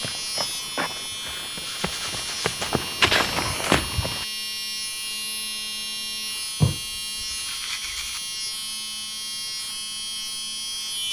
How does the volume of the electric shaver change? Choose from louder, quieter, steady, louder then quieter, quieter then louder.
steady.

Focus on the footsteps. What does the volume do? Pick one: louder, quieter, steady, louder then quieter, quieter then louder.
quieter then louder.